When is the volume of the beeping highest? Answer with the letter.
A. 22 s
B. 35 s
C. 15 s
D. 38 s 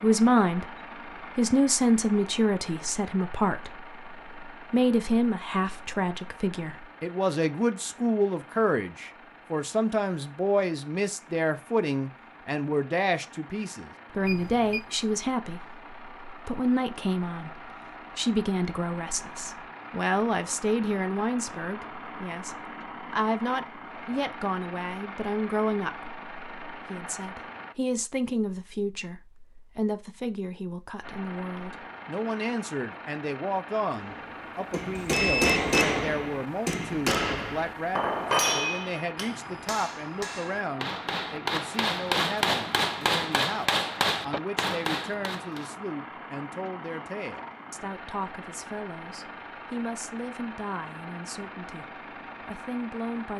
B.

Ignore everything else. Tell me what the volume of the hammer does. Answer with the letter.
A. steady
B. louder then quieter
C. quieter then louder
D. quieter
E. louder
C.